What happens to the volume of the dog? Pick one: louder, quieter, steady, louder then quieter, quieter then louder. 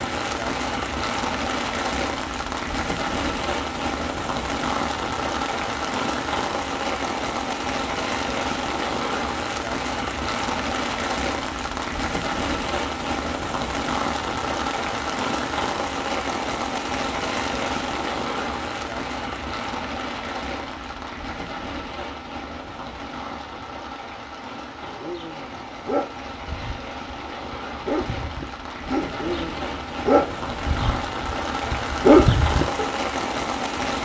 louder.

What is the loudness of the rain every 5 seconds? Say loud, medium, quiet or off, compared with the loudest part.
loud, loud, loud, loud, medium, medium, loud.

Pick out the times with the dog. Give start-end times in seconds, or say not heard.
24.8-32.9.